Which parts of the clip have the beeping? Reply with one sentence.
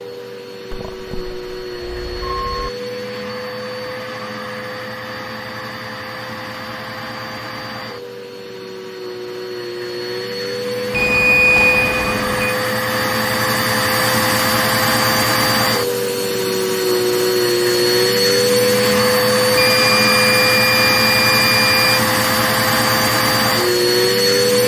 The beeping can be heard from 0.7 to 2.7 s, from 10.9 to 12.6 s and from 19.6 to 22.0 s.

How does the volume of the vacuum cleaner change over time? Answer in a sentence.
The volume of the vacuum cleaner goes up.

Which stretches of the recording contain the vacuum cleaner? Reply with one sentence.
The vacuum cleaner can be heard from 0.0 to 24.6 s.